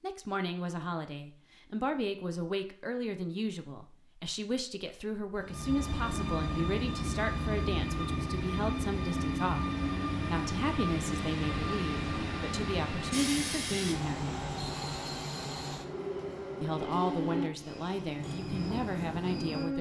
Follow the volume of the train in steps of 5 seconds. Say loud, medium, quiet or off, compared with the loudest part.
off, loud, loud, loud.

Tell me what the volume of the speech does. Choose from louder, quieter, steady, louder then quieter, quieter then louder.
steady.